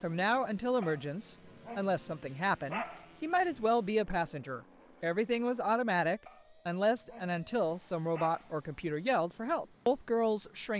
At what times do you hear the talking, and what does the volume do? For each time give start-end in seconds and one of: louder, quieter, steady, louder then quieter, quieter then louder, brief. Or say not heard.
0.0-10.7 steady.